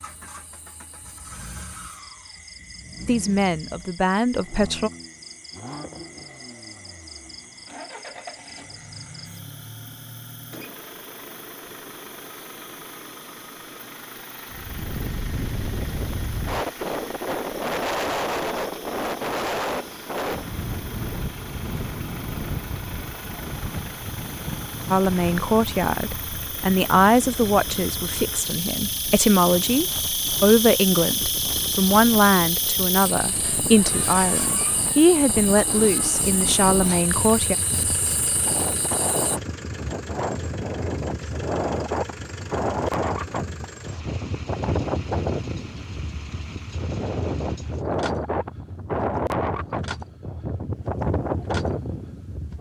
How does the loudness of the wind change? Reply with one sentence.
The loudness of the wind goes down, then up.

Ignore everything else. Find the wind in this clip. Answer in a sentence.
The wind can be heard from 14.5 to 52.5 s.